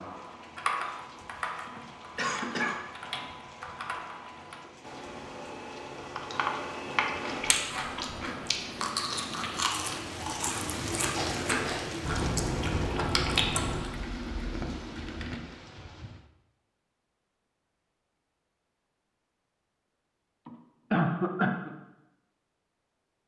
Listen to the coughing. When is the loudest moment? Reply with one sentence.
The loudest moment of the coughing is at 21 seconds.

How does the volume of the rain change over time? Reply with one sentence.
The loudness of the rain goes up, then down.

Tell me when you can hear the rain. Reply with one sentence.
You can hear the rain from 0.0 to 16.3 s.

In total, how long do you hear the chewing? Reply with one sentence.
The chewing can be heard for 7 seconds in total.